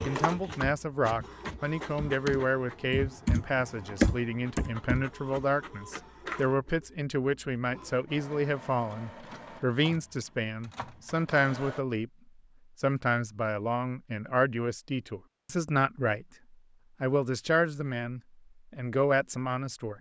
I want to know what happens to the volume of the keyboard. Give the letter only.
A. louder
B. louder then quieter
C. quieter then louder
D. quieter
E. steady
B.